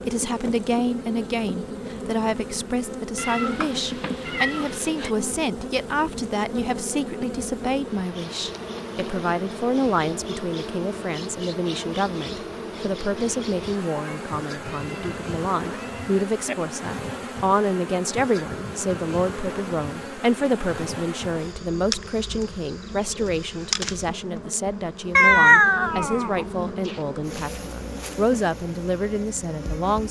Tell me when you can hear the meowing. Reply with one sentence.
The meowing can be heard from 3.1 to 5.1 s, from 13.9 to 16.6 s and from 25.1 to 26.9 s.